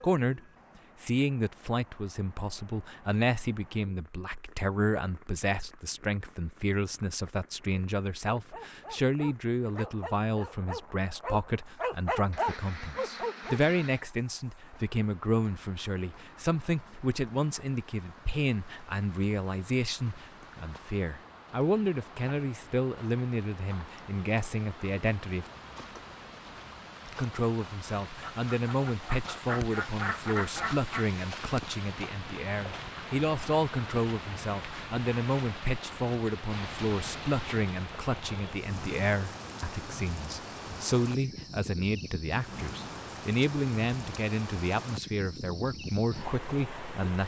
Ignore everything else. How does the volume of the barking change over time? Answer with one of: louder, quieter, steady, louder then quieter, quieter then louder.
louder.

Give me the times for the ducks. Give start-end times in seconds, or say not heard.
12.3-14.1, 28.2-31.1.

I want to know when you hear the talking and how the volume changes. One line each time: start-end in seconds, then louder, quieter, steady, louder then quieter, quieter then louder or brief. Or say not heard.
0.0-0.4 brief
1.0-25.5 steady
27.1-47.2 steady.